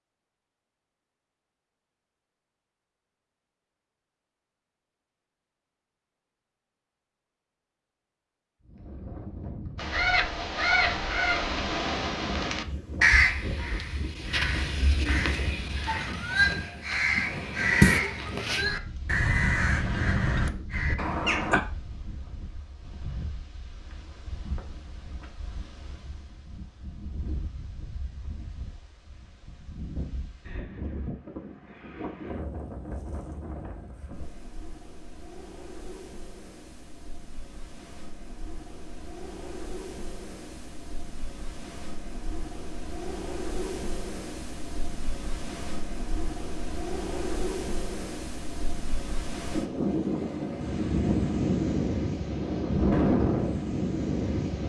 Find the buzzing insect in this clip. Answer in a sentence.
You can't hear the buzzing insect here.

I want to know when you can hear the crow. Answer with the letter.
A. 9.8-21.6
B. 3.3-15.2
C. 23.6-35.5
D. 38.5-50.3
A.